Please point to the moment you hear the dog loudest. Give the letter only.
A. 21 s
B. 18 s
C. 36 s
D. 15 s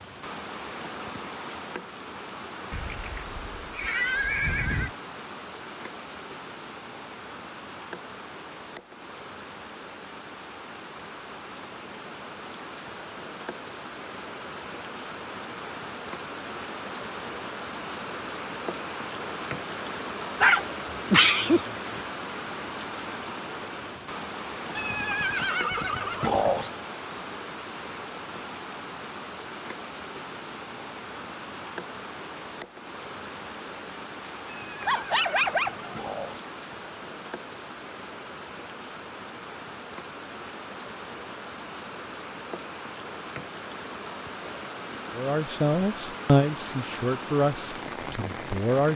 A.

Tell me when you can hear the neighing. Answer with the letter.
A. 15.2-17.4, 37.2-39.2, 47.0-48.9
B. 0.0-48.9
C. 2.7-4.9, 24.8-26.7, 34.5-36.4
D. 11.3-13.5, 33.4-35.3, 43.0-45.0
C.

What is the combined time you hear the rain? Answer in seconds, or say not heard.
49 s.